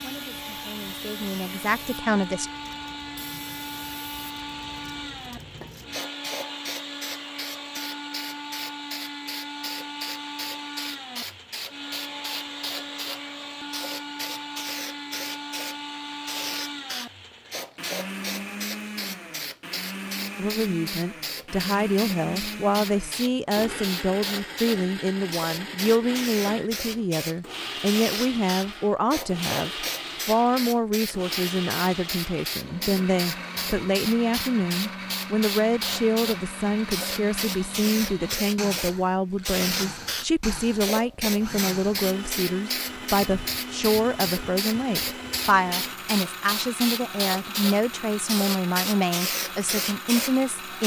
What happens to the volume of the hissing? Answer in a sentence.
The loudness of the hissing goes up.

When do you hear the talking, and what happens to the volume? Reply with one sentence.
You can hear the talking briefly from 0.0 to 2.5 s; and from 20.4 to 50.8 s, at a steady volume.